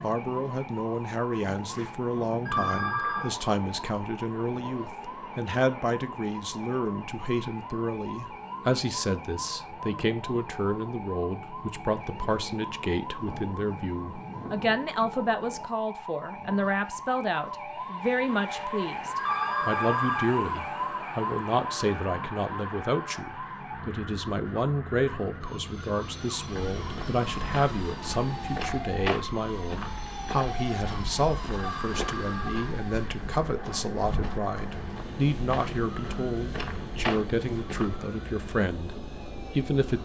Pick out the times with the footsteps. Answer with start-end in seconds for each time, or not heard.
26.5-37.9.